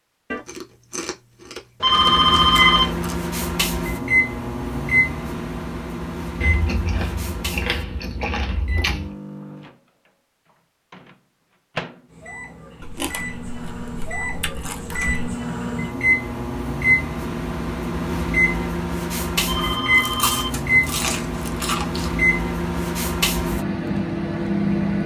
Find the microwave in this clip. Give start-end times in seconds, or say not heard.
1.9-25.0.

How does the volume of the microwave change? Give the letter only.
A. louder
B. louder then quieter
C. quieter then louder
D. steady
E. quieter
C.